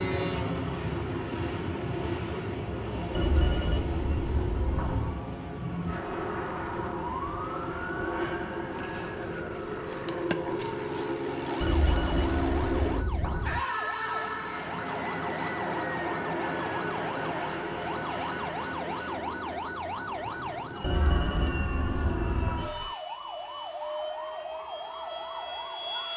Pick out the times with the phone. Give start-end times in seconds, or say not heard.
3.1-5.2, 11.6-13.6, 20.8-22.7.